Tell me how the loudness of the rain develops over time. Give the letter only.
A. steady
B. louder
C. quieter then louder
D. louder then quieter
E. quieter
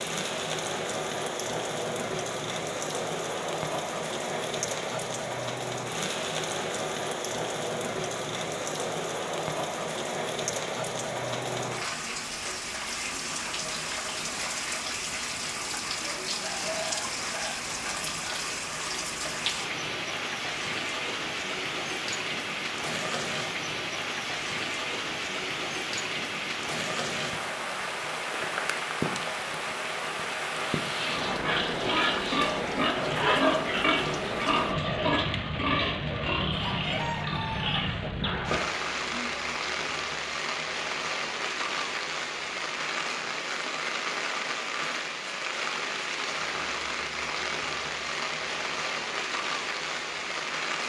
A.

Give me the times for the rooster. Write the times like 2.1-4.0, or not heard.
16.2-17.6, 36.5-37.9.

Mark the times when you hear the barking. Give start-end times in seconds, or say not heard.
not heard.